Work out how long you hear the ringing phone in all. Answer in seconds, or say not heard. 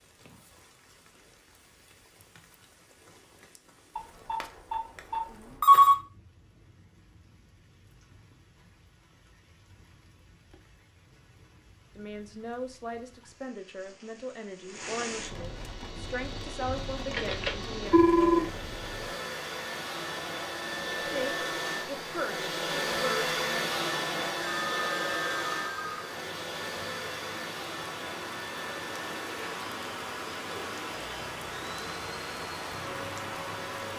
5 s.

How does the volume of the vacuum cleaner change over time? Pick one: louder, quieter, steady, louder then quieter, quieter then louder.
louder then quieter.